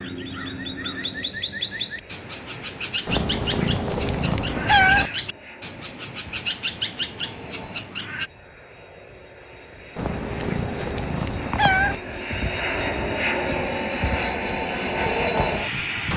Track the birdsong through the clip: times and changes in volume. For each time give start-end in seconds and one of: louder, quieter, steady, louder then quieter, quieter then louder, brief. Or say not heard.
0.0-8.3 steady.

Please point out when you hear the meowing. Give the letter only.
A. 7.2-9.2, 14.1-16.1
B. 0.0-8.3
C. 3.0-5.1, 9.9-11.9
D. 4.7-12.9
C.